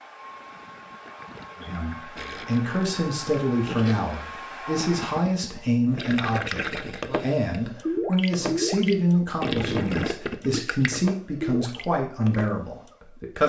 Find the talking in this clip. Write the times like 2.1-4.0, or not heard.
1.6-13.4.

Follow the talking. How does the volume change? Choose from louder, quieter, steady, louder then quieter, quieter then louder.
steady.